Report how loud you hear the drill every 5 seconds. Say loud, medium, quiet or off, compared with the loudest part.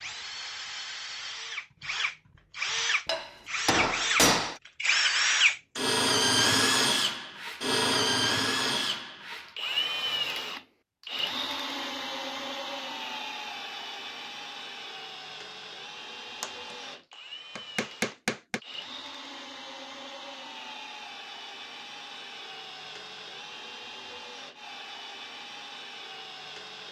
medium, loud, medium, quiet, quiet, quiet.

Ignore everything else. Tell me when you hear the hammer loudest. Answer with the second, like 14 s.
4 s.